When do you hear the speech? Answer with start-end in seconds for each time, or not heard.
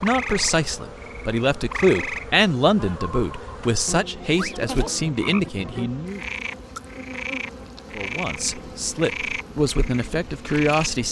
0.0-6.2, 8.0-11.0.